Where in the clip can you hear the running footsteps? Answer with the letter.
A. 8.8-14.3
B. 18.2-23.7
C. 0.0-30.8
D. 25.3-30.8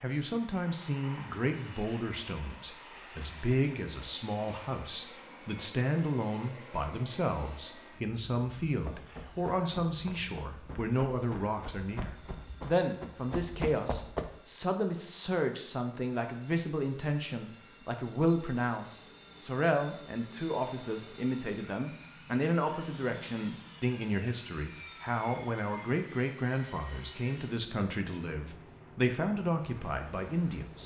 A.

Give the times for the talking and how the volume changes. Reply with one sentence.
The talking can be heard from 0.0 to 30.8 s, at a steady volume.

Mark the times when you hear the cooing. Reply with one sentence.
The cooing can't be heard in this clip.